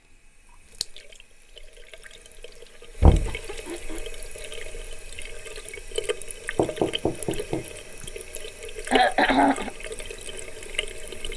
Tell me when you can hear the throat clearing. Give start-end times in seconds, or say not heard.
2.9-4.0, 8.9-9.7.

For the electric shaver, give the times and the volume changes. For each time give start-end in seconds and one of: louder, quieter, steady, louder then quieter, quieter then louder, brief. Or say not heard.
not heard.